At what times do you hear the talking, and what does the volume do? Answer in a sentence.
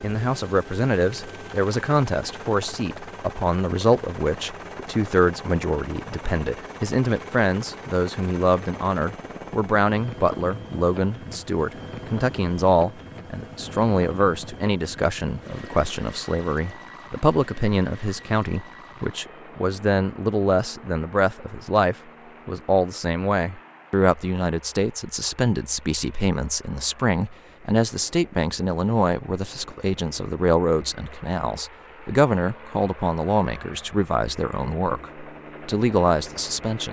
The talking can be heard from 0.0 to 36.8 s, at a steady volume.